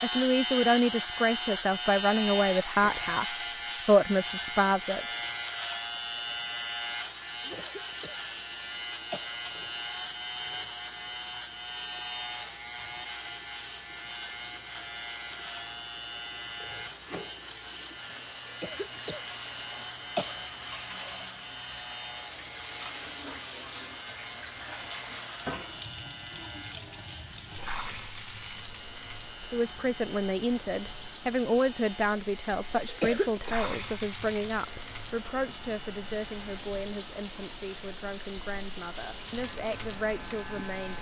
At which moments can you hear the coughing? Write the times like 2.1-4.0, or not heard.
7.5-9.4, 18.6-20.4, 32.9-33.5.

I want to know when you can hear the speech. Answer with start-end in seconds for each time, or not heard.
0.0-5.2, 29.5-40.9.